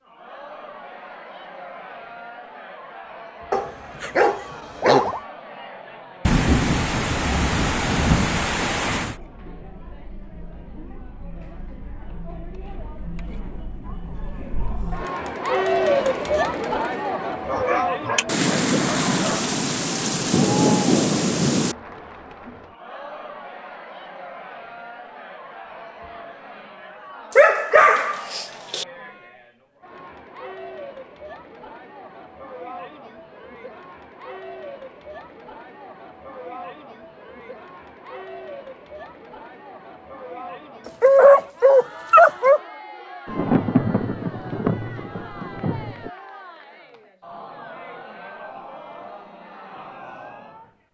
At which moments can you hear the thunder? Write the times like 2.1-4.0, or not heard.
6.2-9.2, 18.2-21.8, 43.2-46.1.